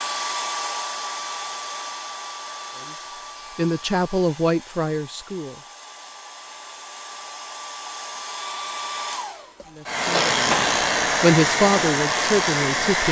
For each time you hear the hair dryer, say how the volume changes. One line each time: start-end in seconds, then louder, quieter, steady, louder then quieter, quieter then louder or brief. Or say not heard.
0.0-13.0 quieter then louder.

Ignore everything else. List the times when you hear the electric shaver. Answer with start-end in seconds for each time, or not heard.
9.9-12.8.